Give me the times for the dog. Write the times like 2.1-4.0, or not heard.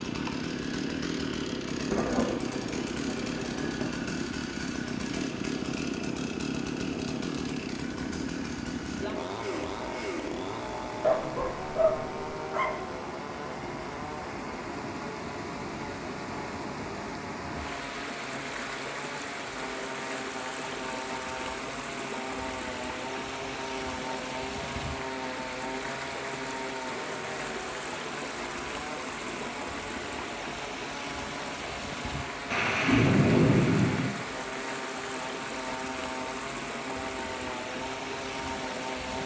11.0-12.8.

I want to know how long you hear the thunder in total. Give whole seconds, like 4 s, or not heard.
4 s.